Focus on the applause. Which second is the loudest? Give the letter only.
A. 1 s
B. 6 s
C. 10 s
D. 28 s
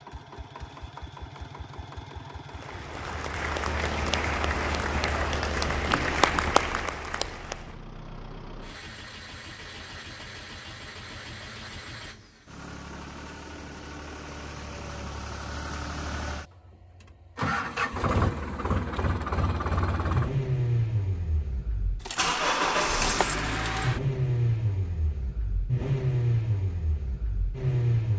B.